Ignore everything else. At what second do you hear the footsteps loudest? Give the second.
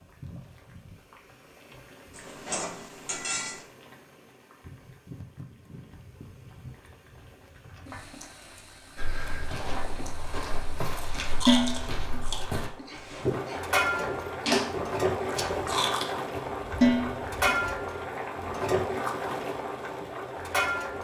13 s.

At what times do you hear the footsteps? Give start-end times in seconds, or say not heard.
8.9-17.9.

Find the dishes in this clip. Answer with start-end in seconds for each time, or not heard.
2.1-3.5, 11.4-12.0, 16.8-17.4.